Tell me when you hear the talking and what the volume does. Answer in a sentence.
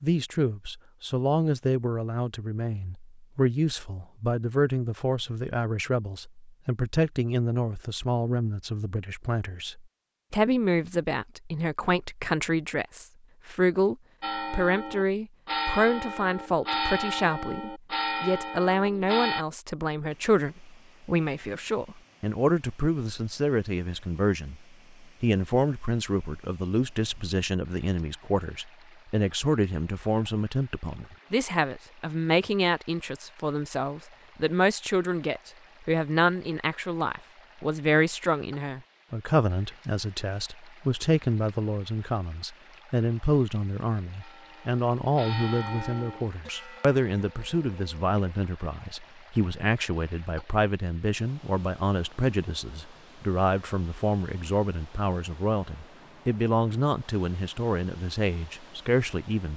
The talking can be heard from 0.0 to 59.5 s, at a steady volume.